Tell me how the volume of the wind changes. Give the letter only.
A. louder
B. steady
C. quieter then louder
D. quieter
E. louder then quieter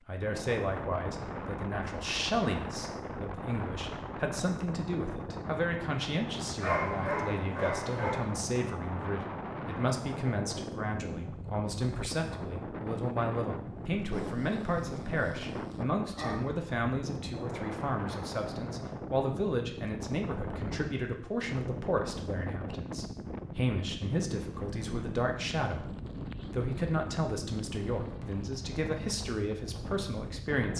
B.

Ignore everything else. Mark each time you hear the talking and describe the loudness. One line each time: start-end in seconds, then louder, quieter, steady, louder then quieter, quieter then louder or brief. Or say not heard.
0.1-30.7 steady.